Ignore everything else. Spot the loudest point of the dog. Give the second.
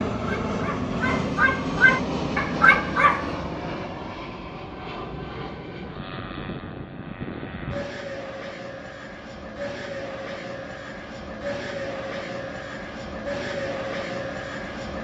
3 s.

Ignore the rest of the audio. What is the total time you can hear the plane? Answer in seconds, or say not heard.
15 s.